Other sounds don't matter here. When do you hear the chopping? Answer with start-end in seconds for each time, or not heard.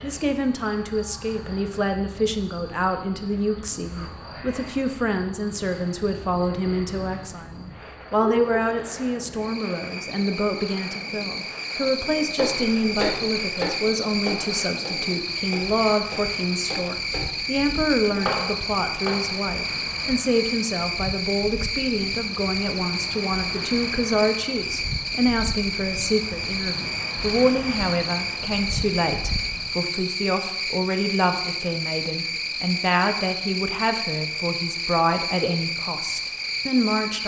12.3-19.2.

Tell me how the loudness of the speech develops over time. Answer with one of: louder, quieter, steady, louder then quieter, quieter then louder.
steady.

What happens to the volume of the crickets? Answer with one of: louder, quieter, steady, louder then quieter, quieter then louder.
louder.